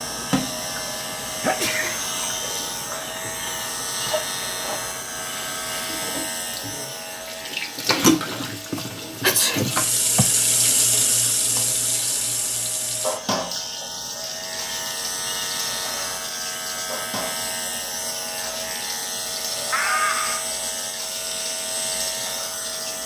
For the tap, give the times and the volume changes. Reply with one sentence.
The tap can be heard from 0.0 to 23.0 s, getting louder then quieter.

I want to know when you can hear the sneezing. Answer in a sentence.
You can hear the sneezing from 1.4 to 1.9 s, from 8.8 to 10.2 s and from 19.7 to 20.4 s.